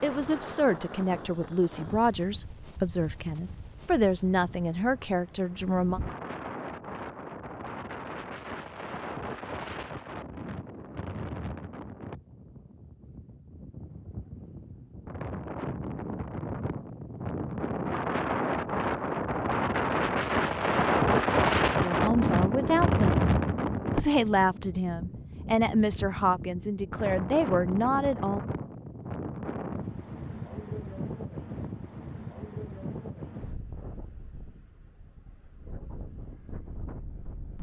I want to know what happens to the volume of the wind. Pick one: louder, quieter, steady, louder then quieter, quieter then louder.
louder then quieter.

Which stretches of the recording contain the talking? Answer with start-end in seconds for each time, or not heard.
0.0-6.0, 21.8-23.1, 23.9-28.4.